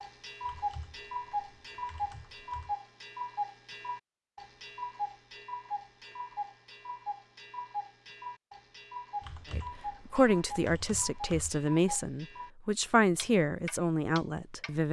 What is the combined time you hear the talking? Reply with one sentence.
The talking can be heard for 5 seconds in total.